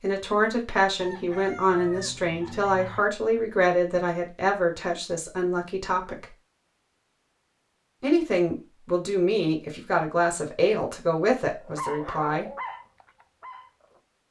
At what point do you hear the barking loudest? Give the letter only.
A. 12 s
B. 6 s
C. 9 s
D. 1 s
A.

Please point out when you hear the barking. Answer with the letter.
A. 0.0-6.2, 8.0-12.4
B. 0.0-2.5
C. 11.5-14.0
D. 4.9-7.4
C.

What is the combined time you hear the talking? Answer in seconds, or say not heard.
11 s.